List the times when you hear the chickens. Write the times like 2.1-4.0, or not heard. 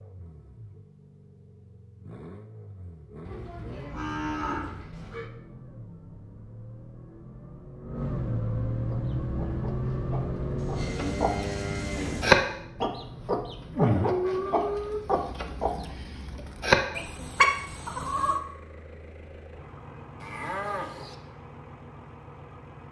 8.8-18.4.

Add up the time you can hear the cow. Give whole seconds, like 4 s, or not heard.
5 s.